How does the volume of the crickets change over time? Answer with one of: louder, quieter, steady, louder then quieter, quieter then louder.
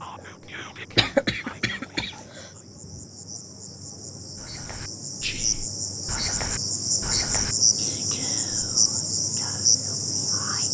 louder.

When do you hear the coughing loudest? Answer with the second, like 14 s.
1 s.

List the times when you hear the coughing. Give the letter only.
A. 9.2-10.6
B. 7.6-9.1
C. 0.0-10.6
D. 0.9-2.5
D.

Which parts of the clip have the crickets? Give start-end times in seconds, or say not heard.
0.0-10.6.